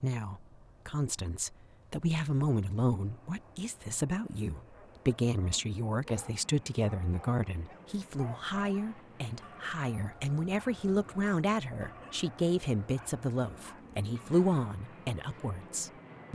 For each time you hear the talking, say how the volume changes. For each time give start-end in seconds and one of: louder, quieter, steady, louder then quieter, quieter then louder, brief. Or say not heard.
0.0-16.3 steady.